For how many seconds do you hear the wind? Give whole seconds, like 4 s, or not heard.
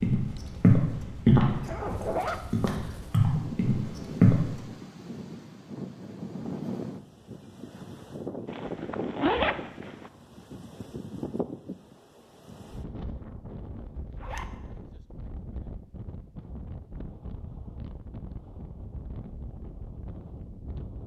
21 s.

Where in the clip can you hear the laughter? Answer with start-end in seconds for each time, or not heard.
not heard.